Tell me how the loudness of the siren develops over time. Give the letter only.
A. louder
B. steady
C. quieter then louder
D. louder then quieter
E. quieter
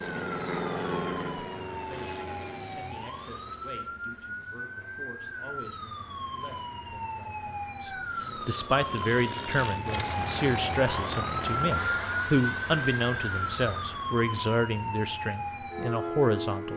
A.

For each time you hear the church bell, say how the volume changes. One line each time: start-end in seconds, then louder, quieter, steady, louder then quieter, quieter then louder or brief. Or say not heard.
not heard.